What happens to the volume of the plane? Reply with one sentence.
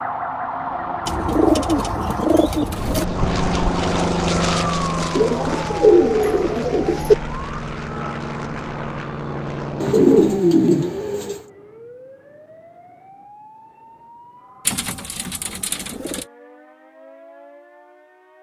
The loudness of the plane goes down.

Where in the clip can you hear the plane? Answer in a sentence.
You can hear the plane from 2.7 to 10.4 s.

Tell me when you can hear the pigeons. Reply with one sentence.
You can hear the pigeons from 1.1 to 3.0 s, from 5.2 to 7.2 s, from 9.8 to 11.4 s and from 14.7 to 16.2 s.